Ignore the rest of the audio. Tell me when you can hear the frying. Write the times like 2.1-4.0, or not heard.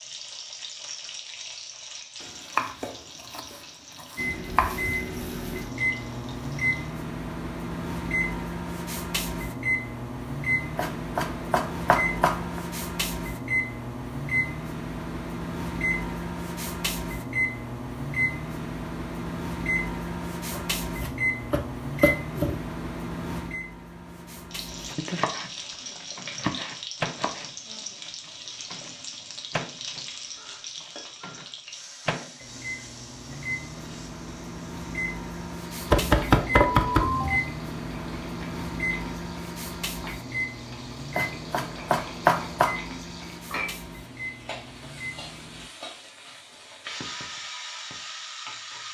0.0-7.0, 24.5-48.8.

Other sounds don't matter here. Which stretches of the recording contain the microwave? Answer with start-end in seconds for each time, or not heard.
4.2-45.7.